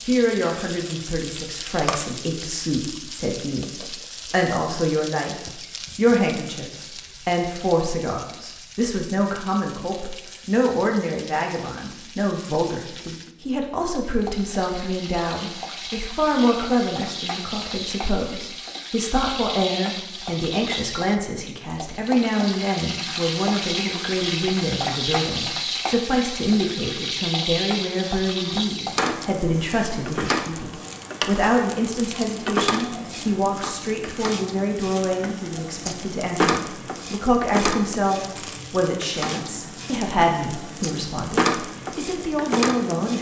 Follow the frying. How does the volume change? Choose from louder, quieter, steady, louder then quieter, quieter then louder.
louder.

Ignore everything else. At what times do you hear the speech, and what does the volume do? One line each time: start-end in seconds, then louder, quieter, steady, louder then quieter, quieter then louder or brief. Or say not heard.
0.0-43.1 steady.